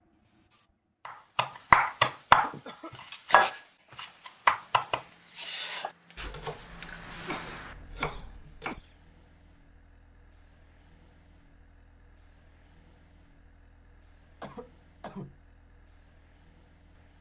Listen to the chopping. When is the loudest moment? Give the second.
2 s.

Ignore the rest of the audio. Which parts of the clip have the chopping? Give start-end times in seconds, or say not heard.
1.1-2.5, 3.1-8.8.